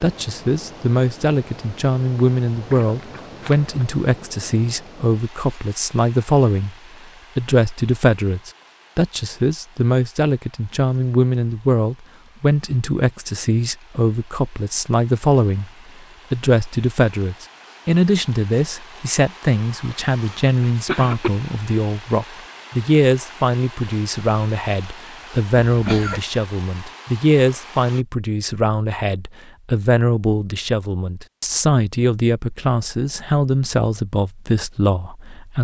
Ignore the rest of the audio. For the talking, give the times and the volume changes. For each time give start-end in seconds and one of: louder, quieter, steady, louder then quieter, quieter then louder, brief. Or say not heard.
0.0-6.8 steady
7.3-15.7 steady
16.3-35.5 steady.